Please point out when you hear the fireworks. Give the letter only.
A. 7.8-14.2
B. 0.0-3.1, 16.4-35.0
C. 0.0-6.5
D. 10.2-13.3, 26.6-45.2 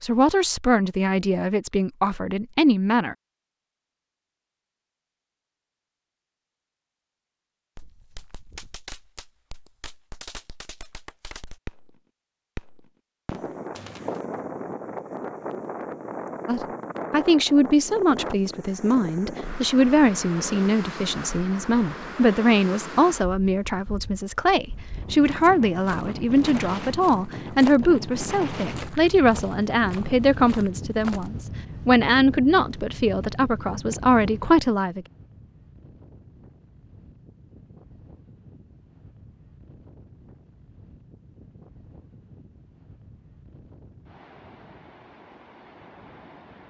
A.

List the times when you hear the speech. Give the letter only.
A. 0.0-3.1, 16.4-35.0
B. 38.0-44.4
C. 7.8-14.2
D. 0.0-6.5
A.